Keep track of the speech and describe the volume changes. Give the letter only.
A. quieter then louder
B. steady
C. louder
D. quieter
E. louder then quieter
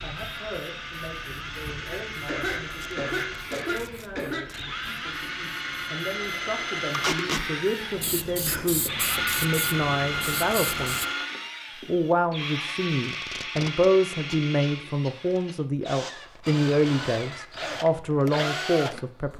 C.